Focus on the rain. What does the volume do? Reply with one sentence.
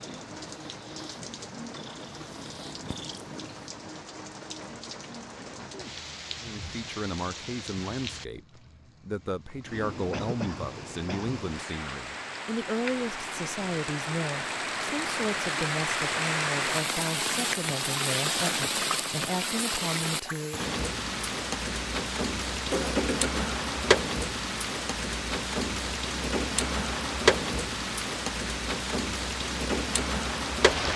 The volume of the rain goes up.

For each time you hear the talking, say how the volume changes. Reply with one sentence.
You can hear the talking from 6.4 to 20.6 s, at a steady volume.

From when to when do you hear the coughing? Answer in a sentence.
The coughing can be heard from 10.1 to 11.4 s and from 22.7 to 23.6 s.